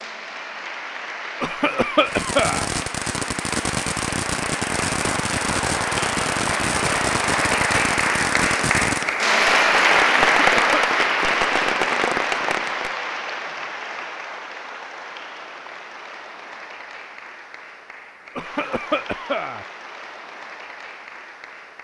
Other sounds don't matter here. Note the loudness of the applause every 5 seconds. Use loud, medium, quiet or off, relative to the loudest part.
medium, loud, loud, quiet, quiet.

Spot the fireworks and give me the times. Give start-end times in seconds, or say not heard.
2.0-12.9.